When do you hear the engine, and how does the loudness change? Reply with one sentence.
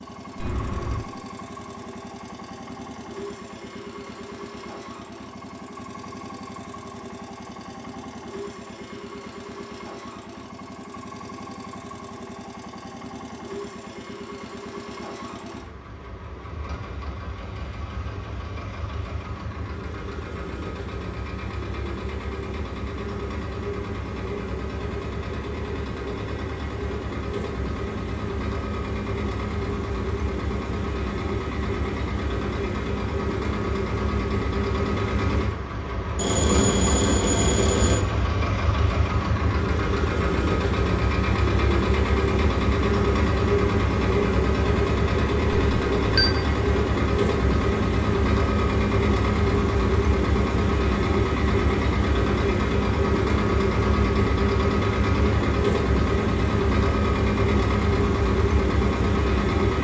You can hear the engine from 0.0 to 59.7 s, getting louder.